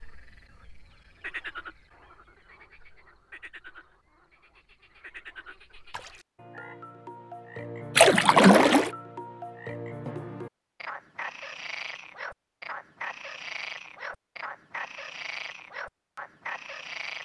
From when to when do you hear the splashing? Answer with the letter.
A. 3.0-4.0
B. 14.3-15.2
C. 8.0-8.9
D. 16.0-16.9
C.